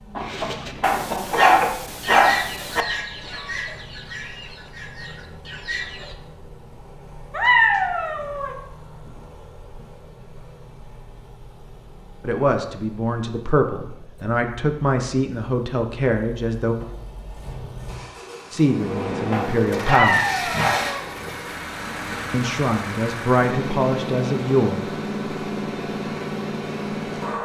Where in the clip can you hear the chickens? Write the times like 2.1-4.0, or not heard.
0.1-6.2.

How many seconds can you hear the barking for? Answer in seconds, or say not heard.
4 s.